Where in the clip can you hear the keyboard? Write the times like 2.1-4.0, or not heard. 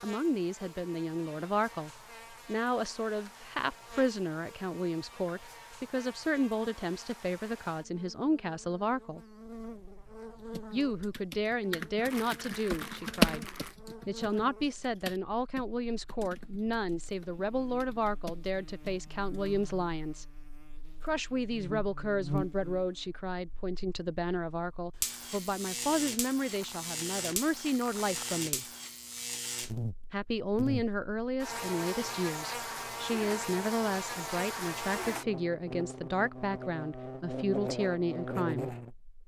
10.5-19.6.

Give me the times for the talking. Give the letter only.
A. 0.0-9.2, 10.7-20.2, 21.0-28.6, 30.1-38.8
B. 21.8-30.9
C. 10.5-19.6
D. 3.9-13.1
A.